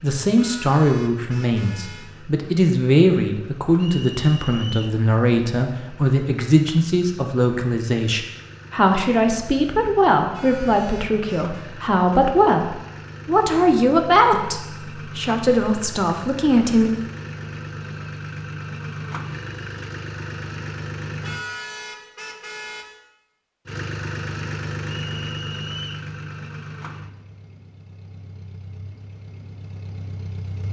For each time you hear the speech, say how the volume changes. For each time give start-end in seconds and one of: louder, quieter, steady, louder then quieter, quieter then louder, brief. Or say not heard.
0.0-17.0 steady.